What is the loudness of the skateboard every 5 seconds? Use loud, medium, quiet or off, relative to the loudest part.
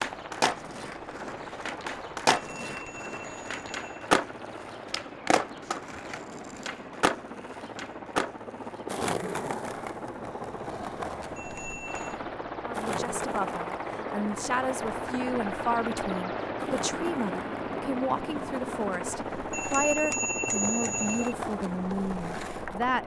loud, loud, medium, medium, medium.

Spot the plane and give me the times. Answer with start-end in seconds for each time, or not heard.
0.0-23.0.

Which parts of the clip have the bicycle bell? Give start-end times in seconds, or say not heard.
2.4-3.9, 11.3-12.2, 19.5-21.4.